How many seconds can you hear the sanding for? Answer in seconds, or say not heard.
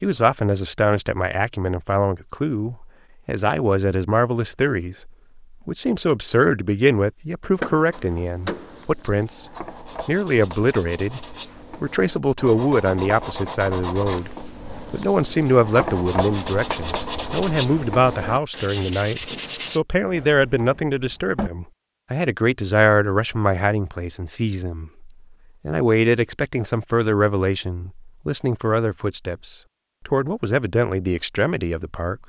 12 s.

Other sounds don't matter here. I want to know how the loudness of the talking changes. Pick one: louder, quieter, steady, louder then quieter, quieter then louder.
steady.